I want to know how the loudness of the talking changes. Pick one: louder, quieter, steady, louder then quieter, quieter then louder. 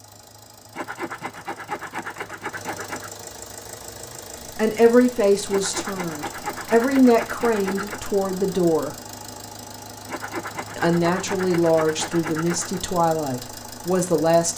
steady.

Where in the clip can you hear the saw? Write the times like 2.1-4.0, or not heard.
0.8-3.1, 5.5-8.1, 10.1-12.8.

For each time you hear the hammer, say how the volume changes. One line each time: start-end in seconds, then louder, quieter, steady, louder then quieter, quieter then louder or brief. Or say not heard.
not heard.